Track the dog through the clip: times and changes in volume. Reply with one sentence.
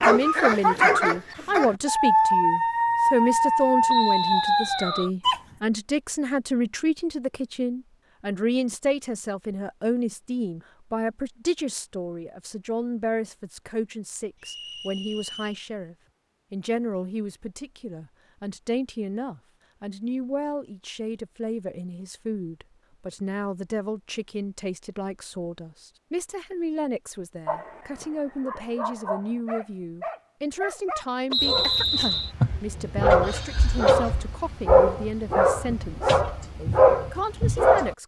The dog can be heard from 0.0 to 5.4 s, at a steady volume; and from 27.4 to 38.0 s, getting louder.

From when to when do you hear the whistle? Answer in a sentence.
You can hear the whistle from 3.9 to 5.1 s, from 14.4 to 15.6 s and from 31.3 to 32.3 s.